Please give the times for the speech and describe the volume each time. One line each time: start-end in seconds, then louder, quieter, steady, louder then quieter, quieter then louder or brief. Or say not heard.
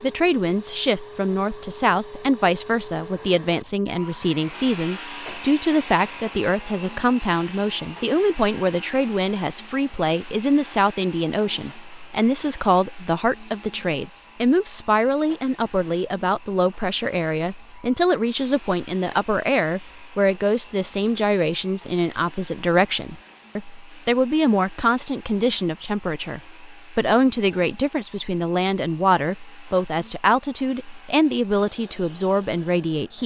0.0-33.2 steady.